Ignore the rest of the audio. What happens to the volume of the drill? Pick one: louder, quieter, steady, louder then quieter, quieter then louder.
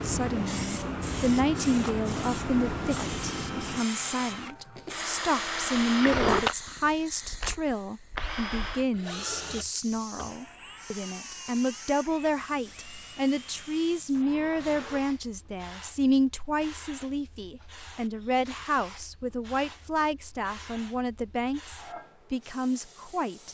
louder then quieter.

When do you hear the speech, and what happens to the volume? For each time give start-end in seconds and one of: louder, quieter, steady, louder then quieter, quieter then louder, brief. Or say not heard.
0.0-23.5 steady.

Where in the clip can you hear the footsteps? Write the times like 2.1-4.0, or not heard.
not heard.